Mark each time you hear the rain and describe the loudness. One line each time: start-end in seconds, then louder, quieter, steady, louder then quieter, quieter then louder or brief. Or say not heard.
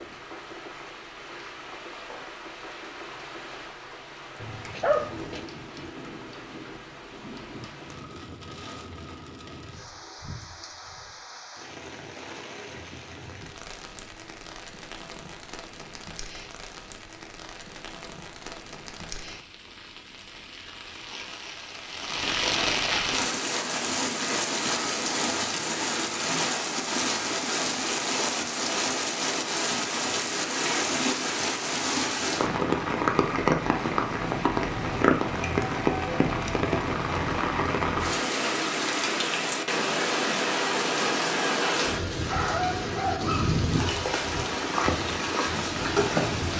0.0-46.5 louder.